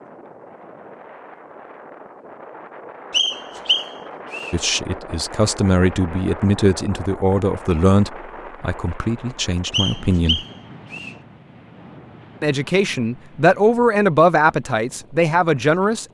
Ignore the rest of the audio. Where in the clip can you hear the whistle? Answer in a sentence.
The whistle can be heard from 3.1 to 4.5 s and from 9.7 to 11.2 s.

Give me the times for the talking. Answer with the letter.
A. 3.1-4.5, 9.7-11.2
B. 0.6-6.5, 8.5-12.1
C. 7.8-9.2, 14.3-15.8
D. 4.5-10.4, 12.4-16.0
D.